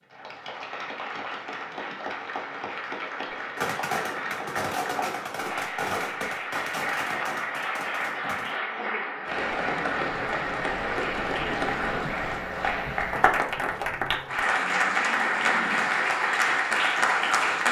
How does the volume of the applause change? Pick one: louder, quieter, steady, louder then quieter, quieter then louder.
louder.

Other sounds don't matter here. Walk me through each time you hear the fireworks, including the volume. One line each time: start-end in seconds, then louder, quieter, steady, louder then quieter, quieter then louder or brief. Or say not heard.
3.5-8.6 quieter.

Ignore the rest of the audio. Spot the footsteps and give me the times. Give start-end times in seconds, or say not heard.
not heard.